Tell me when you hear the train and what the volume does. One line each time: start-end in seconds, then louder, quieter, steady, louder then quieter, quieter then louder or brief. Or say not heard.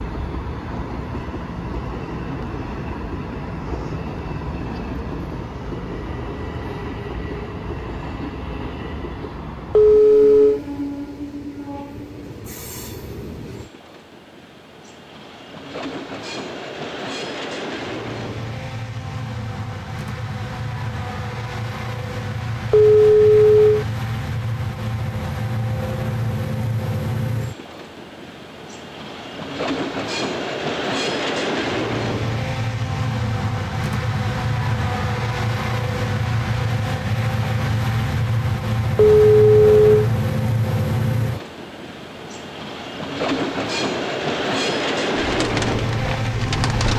0.0-46.9 louder.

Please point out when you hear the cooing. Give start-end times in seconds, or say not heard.
45.1-46.9.